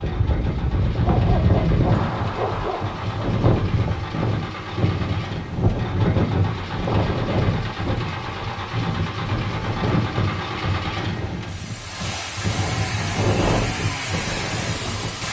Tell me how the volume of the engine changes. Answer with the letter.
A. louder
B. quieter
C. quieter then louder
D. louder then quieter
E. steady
A.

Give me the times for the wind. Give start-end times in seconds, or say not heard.
0.0-15.2.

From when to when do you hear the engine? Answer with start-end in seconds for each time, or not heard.
0.0-15.2.